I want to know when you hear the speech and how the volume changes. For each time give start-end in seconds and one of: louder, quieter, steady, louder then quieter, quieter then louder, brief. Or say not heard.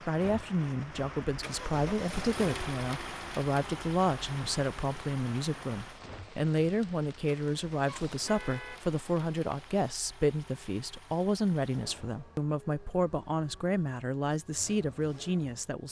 0.1-15.8 steady.